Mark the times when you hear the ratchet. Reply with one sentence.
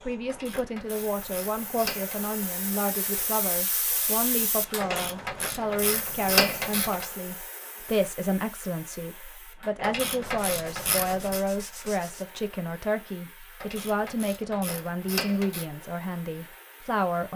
You can hear the ratchet from 0.3 to 2.3 s, from 4.8 to 7.0 s, from 9.8 to 11.4 s and from 13.6 to 15.7 s.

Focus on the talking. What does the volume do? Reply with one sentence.
The volume of the talking stays about the same.